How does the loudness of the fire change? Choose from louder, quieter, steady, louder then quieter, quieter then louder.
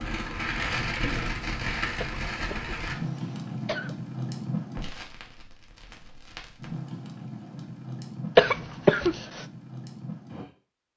quieter.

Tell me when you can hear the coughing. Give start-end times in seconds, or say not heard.
2.0-4.0, 8.3-9.4.